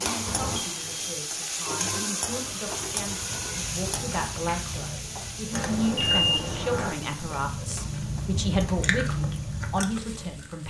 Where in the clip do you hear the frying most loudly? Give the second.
2 s.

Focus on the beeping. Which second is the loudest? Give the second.
6 s.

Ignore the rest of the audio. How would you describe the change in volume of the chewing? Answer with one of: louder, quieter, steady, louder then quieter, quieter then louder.
louder.